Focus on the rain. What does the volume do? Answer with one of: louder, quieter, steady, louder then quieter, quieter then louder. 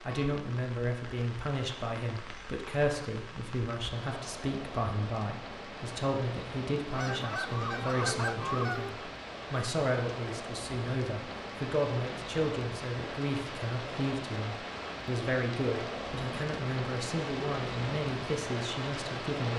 louder.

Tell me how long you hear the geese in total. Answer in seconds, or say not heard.
2 s.